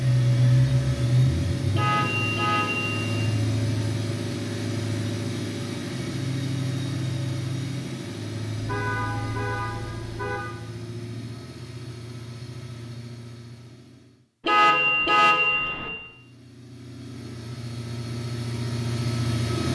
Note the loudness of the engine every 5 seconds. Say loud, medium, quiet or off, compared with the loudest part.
loud, medium, quiet, medium.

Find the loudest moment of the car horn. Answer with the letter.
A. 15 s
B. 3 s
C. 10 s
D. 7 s
A.